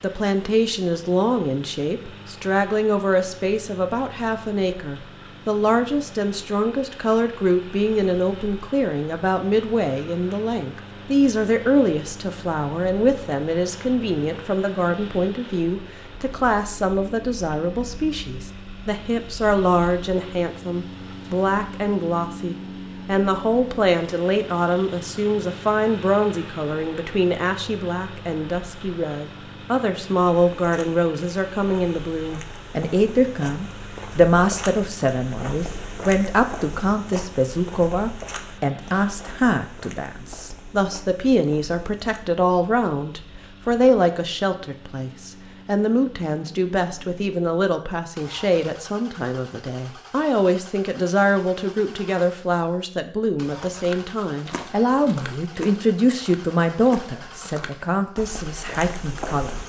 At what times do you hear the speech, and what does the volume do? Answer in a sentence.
The speech can be heard from 0.0 to 59.6 s, at a steady volume.